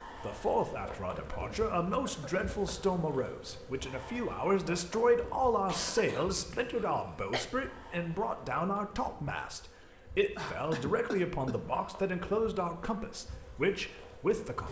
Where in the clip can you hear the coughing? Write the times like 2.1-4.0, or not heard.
1.3-3.0, 5.7-7.5, 9.8-11.8.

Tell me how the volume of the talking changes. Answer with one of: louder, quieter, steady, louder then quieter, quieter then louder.
steady.